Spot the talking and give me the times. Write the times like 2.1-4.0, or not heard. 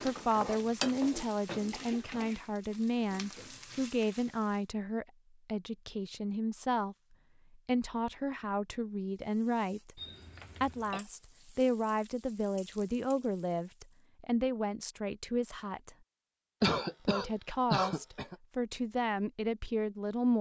0.0-10.0, 10.6-15.9, 17.1-20.3.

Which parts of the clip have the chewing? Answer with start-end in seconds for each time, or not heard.
not heard.